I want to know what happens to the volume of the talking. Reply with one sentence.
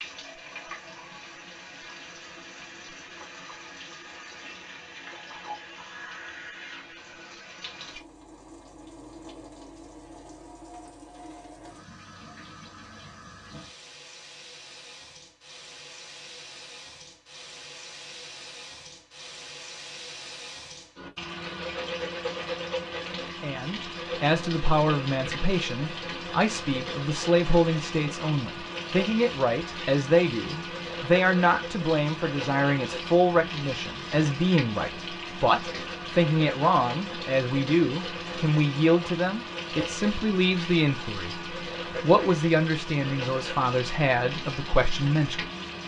The loudness of the talking stays about the same.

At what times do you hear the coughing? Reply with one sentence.
You can't hear the coughing here.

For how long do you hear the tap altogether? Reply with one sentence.
You can hear the tap for 46 seconds altogether.